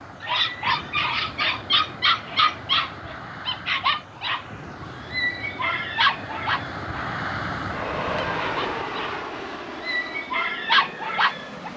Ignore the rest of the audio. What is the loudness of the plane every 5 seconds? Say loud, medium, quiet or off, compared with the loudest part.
medium, loud, medium.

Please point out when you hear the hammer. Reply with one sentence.
You can't hear the hammer here.